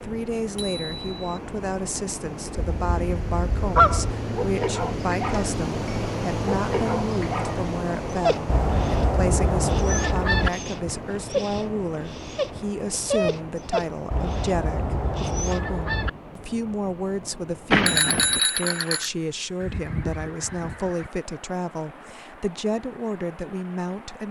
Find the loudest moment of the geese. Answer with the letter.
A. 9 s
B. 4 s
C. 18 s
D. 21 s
B.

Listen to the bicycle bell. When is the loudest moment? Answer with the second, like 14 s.
18 s.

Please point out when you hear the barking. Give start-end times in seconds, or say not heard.
3.7-15.7.